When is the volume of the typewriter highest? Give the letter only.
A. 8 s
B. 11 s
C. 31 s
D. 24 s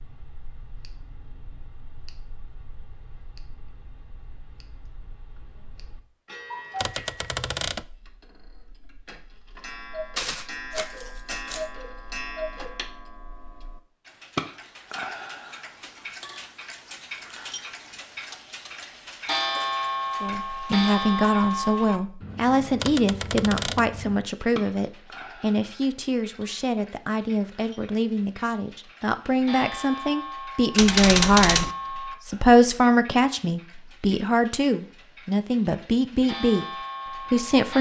C.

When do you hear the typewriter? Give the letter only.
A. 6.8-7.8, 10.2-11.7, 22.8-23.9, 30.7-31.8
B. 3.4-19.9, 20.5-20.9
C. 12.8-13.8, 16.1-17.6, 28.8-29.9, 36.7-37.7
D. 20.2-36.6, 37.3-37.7
A.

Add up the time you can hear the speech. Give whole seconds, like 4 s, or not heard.
17 s.